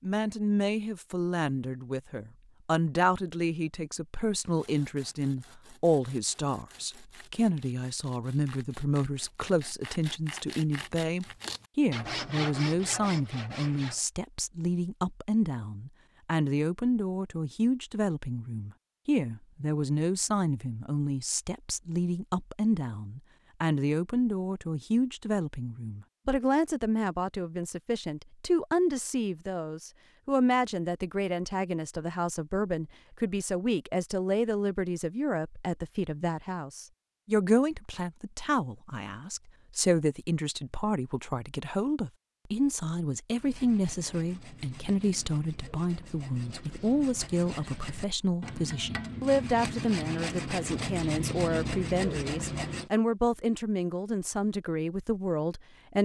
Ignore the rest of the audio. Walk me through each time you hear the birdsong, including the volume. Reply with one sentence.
The birdsong can't be heard in this clip.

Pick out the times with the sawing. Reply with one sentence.
You can hear the sawing from 4.5 to 14.1 s and from 43.4 to 52.9 s.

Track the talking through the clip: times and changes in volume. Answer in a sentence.
The talking can be heard from 0.0 to 56.0 s, at a steady volume.